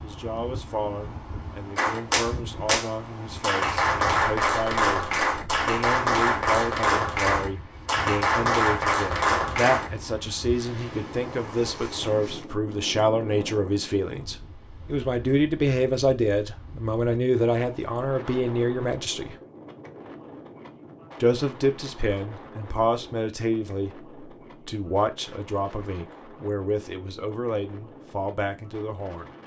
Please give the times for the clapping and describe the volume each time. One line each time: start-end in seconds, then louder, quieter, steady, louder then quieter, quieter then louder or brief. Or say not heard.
1.8-9.9 steady.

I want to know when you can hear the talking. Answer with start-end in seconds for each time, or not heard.
0.0-19.4, 21.2-29.3.